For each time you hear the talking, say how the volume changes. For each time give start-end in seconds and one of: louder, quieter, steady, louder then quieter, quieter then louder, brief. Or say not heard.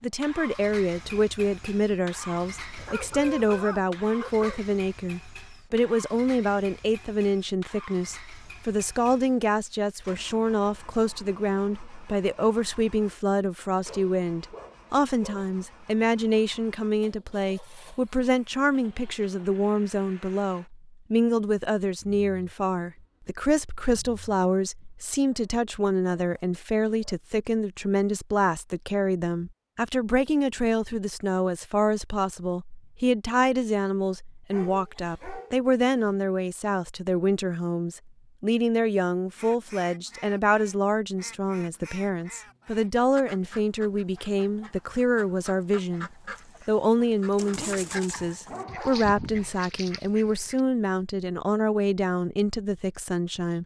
0.0-53.6 steady.